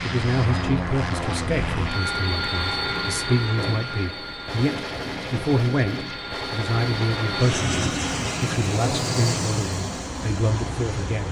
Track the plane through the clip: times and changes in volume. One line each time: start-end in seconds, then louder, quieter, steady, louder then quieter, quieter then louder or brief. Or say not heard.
0.0-11.2 quieter then louder.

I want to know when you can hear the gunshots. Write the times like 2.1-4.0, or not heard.
3.5-7.5.